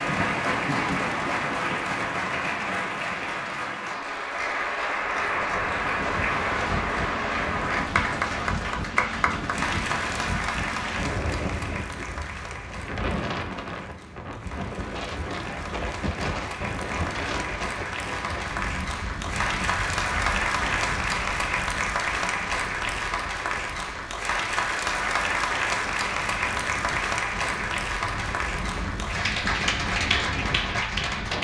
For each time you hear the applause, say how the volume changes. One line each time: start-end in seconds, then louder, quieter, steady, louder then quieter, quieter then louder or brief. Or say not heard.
0.0-31.3 quieter then louder.